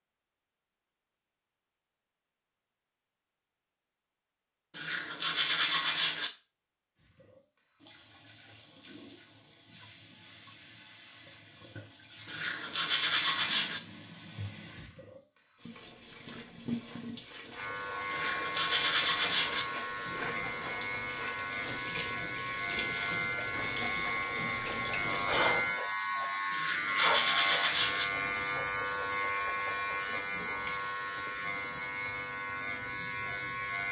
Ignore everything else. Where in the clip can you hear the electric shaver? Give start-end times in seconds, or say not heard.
17.5-33.8.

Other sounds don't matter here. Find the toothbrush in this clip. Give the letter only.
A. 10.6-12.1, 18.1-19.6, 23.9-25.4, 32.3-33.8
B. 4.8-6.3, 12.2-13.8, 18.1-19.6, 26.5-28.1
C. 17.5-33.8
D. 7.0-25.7
B.